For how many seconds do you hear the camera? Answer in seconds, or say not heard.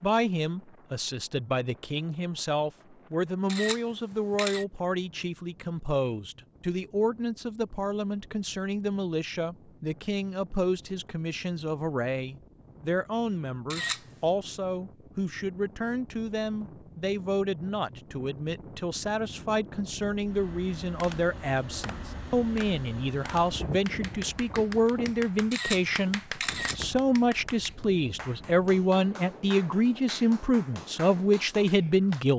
3 s.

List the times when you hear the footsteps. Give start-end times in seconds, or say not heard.
not heard.